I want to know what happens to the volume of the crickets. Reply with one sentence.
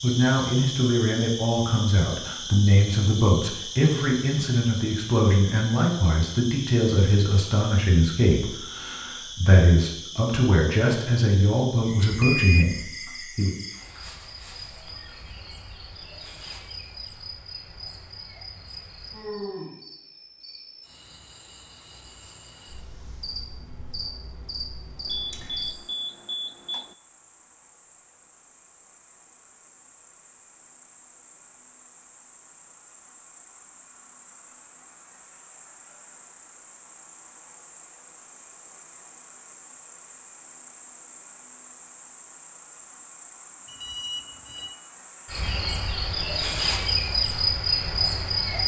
The volume of the crickets goes down, then up.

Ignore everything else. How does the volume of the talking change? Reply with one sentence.
The volume of the talking stays about the same.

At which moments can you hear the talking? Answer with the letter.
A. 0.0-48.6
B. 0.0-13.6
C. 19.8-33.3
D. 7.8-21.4
B.